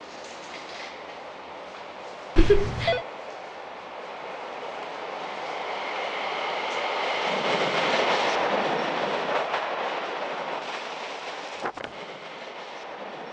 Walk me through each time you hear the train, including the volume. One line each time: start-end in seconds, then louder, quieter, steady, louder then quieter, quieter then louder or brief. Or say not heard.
0.0-13.2 louder then quieter.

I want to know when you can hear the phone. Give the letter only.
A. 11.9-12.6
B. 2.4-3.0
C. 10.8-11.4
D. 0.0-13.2
B.